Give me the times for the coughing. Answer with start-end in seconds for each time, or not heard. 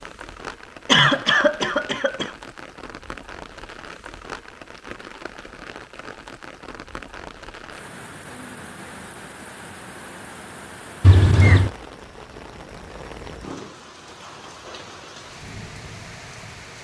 0.8-2.3, 11.0-11.7.